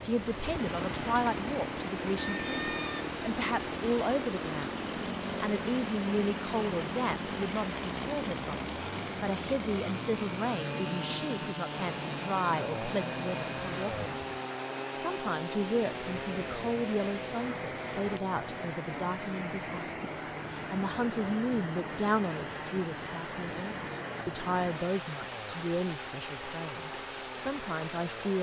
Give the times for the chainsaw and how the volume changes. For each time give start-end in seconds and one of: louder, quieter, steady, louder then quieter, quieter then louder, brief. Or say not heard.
0.2-28.3 quieter.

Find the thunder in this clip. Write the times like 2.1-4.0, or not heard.
not heard.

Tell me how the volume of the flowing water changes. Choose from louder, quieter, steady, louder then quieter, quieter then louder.
steady.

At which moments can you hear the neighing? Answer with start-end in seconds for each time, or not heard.
2.2-3.0.